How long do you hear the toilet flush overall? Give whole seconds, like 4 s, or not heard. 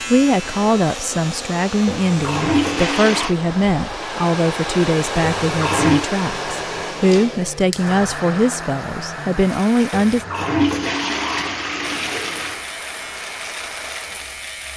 5 s.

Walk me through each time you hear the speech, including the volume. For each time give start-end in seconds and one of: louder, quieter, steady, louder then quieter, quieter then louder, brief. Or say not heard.
0.1-10.2 steady.